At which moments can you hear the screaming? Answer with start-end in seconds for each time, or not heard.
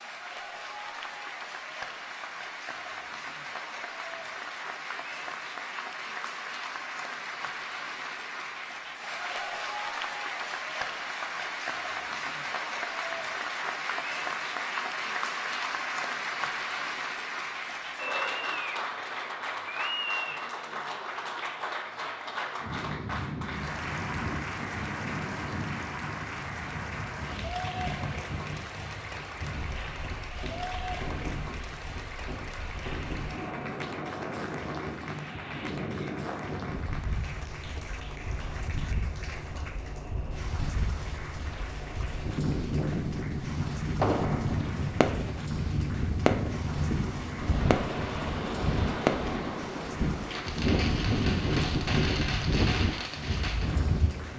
not heard.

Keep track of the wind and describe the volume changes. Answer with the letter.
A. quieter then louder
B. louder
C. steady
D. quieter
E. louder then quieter
B.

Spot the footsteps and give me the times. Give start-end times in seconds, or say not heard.
not heard.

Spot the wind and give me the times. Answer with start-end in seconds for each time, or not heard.
22.6-54.3.